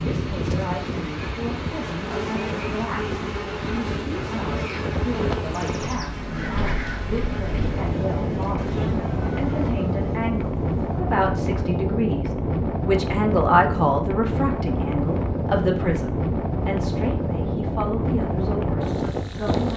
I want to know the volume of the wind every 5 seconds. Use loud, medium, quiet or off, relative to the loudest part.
medium, loud, loud, loud.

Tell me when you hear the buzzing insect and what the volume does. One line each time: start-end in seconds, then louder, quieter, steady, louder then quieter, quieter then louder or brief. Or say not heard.
0.0-11.0 quieter.